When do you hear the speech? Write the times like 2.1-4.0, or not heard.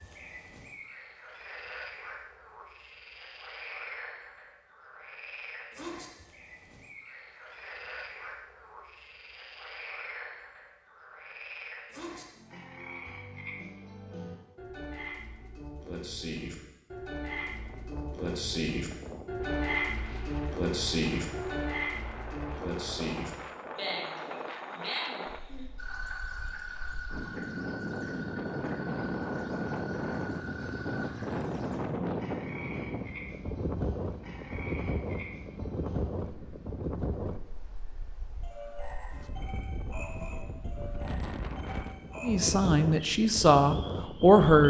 42.2-44.6.